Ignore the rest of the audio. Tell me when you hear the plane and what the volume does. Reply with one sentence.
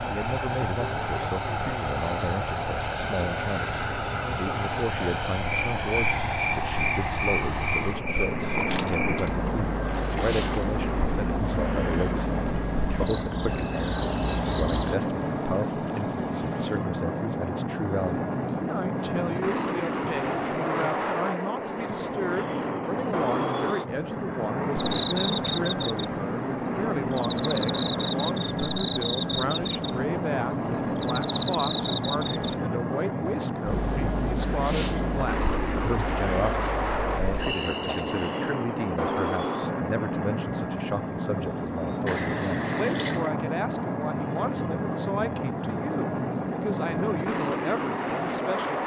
You can hear the plane from 0.0 to 48.8 s, at a steady volume.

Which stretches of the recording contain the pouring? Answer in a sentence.
You can hear the pouring from 9.8 to 10.8 s and from 42.0 to 43.4 s.